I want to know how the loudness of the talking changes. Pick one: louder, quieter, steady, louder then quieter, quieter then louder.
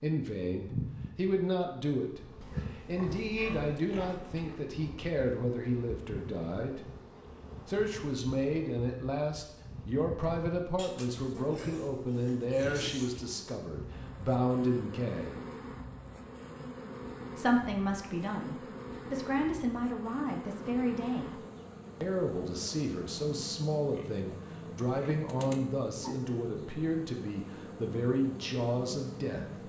steady.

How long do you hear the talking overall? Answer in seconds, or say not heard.
27 s.